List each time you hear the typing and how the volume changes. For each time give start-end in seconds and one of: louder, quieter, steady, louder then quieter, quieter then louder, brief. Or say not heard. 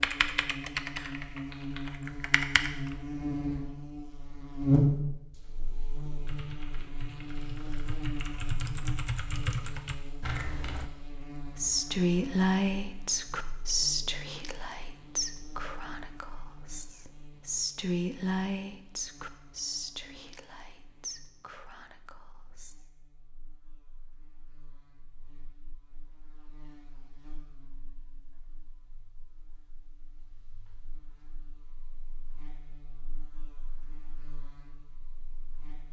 0.0-3.0 brief
6.2-10.9 louder.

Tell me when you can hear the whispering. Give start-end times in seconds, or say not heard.
11.5-22.8.